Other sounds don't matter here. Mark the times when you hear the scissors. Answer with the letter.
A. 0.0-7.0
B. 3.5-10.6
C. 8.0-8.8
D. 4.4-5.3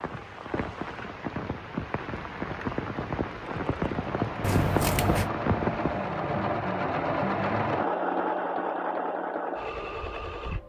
D.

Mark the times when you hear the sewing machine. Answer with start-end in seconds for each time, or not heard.
3.5-10.6.